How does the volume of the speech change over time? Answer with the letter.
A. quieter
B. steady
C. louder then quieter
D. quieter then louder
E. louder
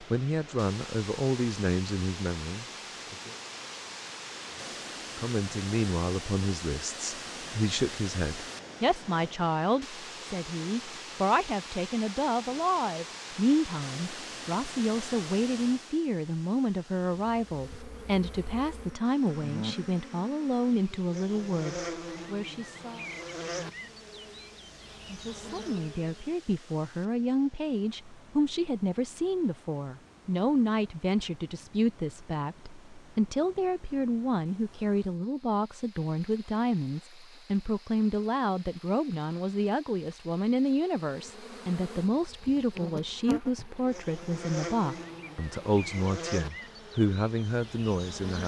B.